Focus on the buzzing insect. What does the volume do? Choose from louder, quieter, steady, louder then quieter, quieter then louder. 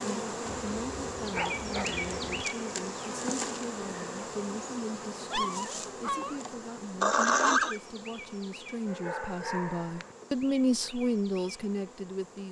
quieter.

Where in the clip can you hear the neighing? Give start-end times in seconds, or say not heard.
7.0-7.8.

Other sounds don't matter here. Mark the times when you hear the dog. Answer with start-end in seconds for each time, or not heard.
0.5-2.5, 5.3-6.4, 8.8-10.1.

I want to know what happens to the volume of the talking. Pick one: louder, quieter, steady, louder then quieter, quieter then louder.
louder.